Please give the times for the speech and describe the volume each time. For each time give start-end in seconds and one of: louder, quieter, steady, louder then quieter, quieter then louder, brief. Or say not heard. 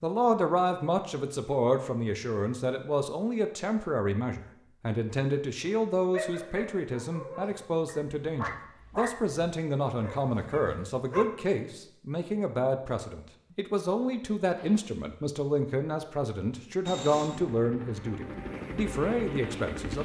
0.0-19.9 steady.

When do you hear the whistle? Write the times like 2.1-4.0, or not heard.
not heard.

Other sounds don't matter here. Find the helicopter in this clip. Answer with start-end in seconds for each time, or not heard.
16.9-19.9.